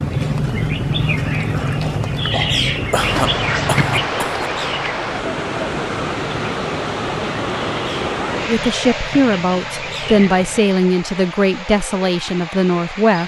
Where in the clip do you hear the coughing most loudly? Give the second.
3 s.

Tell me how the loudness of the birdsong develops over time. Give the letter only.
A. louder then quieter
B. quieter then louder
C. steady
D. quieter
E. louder
D.